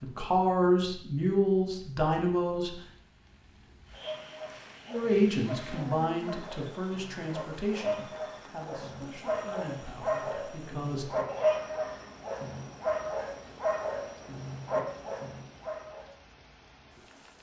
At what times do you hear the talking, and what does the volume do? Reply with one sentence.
You can hear the talking briefly from 0.0 to 2.8 s; and from 4.8 to 11.1 s, getting quieter.